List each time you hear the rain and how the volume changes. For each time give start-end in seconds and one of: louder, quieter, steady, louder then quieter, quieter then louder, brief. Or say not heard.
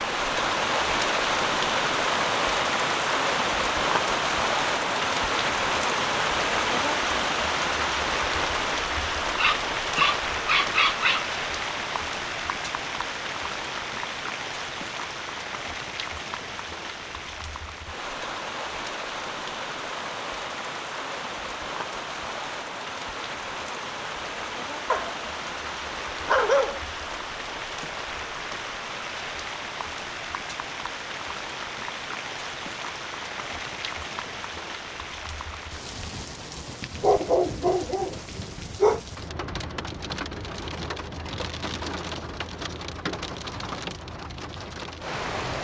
0.0-45.5 quieter.